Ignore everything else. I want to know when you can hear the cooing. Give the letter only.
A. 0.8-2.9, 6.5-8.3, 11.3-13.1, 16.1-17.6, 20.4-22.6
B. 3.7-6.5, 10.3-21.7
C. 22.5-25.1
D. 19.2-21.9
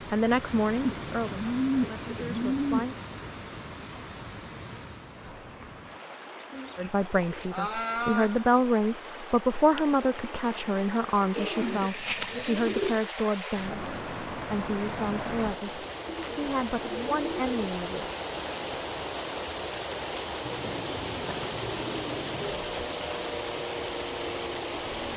A.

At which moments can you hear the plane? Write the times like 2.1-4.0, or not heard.
22.5-25.1.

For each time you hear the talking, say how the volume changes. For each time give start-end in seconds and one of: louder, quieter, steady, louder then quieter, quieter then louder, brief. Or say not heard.
0.1-3.0 brief
6.8-18.1 quieter.